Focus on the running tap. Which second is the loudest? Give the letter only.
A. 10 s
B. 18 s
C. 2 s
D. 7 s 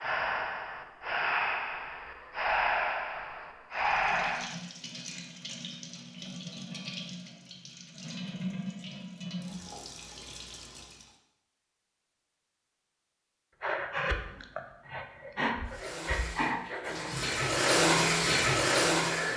B.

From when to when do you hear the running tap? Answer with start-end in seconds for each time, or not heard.
3.8-11.2, 15.7-19.3.